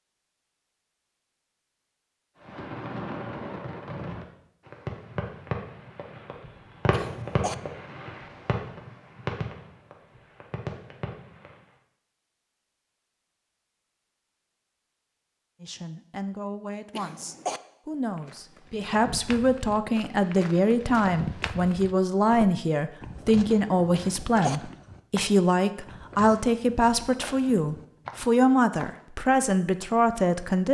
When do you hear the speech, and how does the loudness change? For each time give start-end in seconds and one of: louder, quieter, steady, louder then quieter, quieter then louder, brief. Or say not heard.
15.6-30.6 louder.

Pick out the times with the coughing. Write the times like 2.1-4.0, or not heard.
6.9-7.5, 16.9-17.6, 23.9-24.6.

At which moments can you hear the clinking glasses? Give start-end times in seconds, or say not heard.
not heard.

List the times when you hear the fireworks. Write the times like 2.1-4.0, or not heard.
2.5-11.6.